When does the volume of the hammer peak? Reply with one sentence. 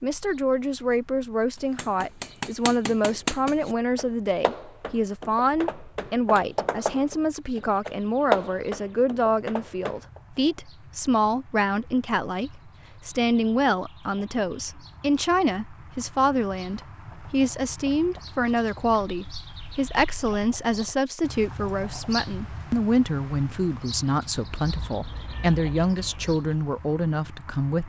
The loudest moment of the hammer is at 8 seconds.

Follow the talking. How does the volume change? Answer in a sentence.
The loudness of the talking stays about the same.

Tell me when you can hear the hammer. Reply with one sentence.
The hammer can be heard from 1.8 to 10.2 s.